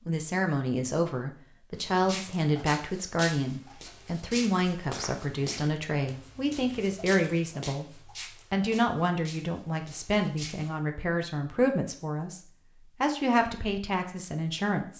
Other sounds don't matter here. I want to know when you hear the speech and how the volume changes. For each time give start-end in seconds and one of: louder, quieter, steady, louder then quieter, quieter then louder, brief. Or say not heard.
0.1-14.9 steady.